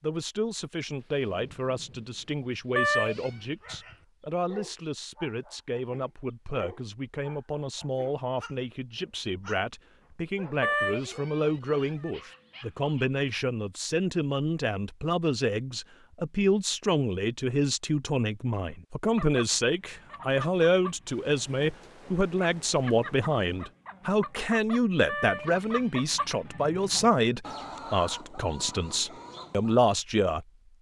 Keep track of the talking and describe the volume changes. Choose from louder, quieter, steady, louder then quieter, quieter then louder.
louder.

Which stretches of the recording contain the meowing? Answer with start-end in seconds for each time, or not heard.
2.8-3.3, 10.6-12.1, 25.1-26.6.